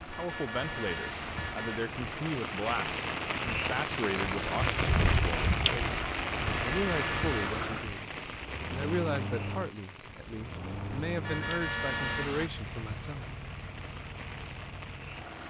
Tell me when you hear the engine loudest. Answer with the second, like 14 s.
7 s.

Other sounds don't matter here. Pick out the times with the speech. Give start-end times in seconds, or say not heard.
0.1-8.1, 8.7-13.3.